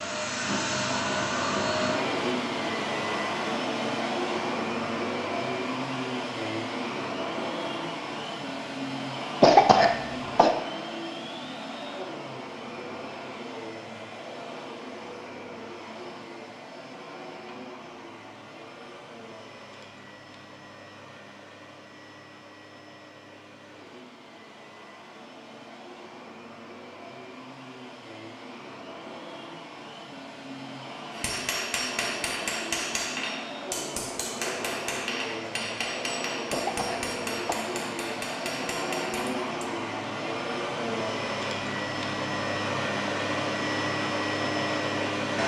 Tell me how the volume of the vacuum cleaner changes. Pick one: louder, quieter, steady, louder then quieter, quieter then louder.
quieter then louder.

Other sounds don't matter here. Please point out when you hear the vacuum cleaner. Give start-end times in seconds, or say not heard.
0.0-45.4.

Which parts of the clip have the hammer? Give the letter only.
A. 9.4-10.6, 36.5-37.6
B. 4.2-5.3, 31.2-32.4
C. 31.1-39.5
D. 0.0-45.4
C.